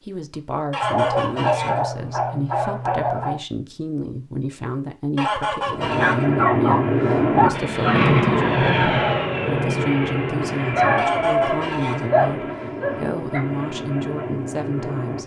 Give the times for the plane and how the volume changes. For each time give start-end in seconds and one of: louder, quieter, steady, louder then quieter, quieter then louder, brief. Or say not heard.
5.7-15.2 quieter.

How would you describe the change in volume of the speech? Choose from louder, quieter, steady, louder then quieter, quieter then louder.
steady.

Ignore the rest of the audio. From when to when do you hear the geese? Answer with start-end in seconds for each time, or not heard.
0.7-1.8, 5.2-6.2, 10.9-12.1.